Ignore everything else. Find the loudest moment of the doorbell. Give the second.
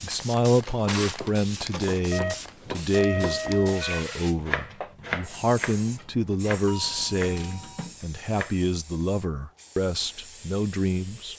3 s.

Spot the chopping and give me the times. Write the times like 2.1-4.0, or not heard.
1.1-8.7.